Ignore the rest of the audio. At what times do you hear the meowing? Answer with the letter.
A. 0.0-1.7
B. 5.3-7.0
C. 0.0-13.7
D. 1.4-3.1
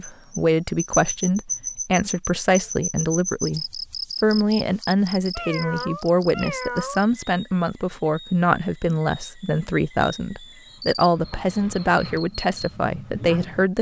B.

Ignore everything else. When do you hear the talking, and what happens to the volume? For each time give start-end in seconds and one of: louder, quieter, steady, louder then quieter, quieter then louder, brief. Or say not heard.
0.0-13.7 steady.